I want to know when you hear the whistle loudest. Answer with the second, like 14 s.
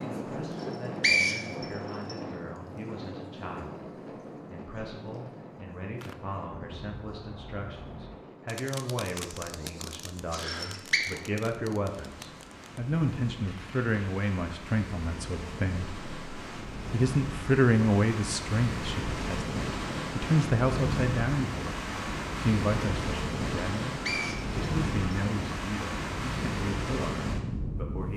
1 s.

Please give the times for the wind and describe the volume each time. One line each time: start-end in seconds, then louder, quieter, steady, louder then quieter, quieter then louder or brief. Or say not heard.
0.0-28.1 quieter then louder.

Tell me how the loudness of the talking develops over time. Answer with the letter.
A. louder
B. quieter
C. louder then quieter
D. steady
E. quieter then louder
C.